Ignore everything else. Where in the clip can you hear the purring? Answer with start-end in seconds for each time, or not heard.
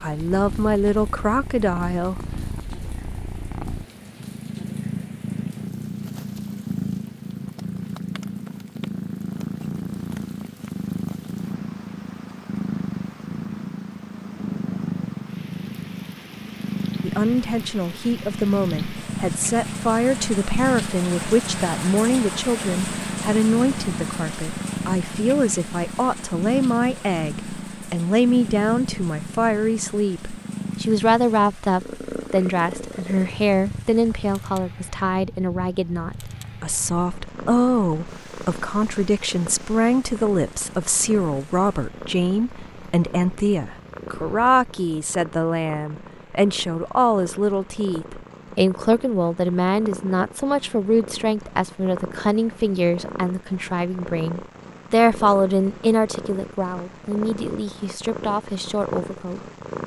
0.0-59.8.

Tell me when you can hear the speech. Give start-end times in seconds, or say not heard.
0.0-2.2, 17.0-59.8.